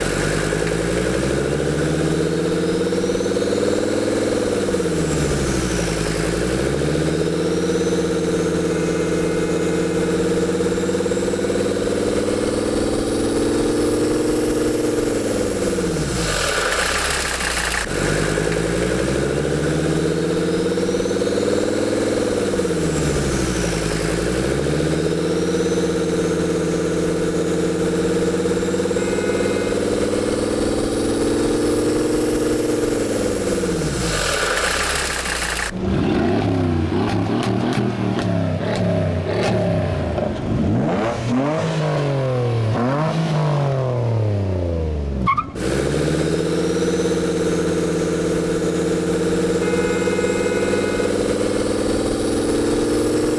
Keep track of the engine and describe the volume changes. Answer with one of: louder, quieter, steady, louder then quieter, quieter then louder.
steady.